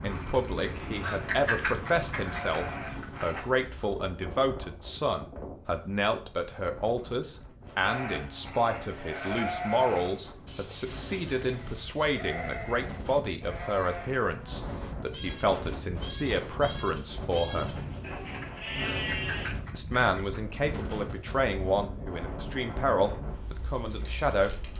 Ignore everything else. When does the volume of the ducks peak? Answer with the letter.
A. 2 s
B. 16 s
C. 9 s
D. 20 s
A.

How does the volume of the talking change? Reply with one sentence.
The loudness of the talking stays about the same.